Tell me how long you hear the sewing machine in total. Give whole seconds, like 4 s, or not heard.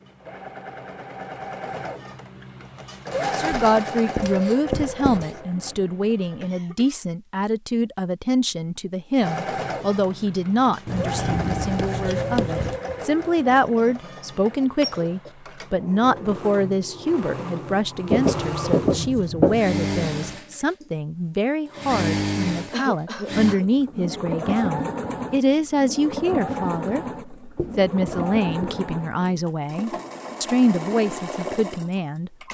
30 s.